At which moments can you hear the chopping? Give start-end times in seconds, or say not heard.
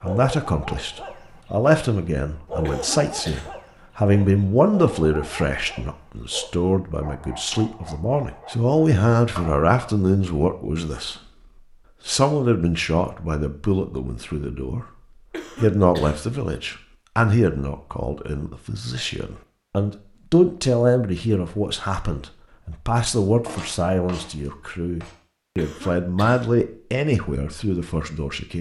9.3-9.9, 23.4-25.1.